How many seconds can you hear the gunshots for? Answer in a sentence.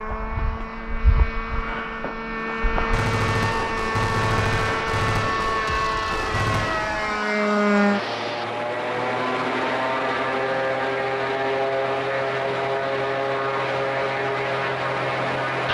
You can hear the gunshots for 4 seconds altogether.